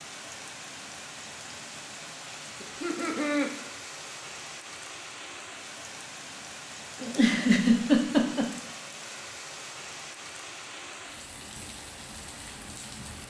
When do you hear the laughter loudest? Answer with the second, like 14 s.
8 s.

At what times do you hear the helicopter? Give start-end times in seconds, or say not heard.
not heard.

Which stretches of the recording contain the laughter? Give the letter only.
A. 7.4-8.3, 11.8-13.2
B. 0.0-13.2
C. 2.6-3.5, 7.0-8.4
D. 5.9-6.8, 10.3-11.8
C.